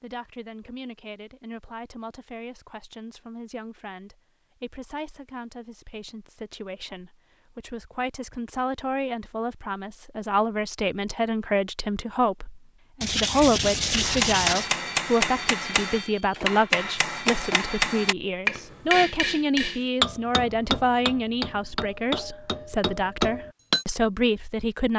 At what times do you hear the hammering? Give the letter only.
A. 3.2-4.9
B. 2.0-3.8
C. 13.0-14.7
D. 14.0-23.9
D.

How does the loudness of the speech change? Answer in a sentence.
The volume of the speech goes up.